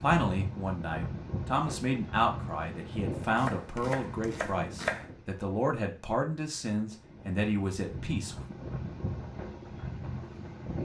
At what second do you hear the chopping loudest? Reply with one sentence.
The volume of the chopping peaks at 5 seconds.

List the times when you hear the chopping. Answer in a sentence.
The chopping can be heard from 3.2 to 5.1 s.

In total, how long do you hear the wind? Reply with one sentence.
You can hear the wind for 11 seconds altogether.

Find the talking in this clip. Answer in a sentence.
You can hear the talking from 0.0 to 8.4 s.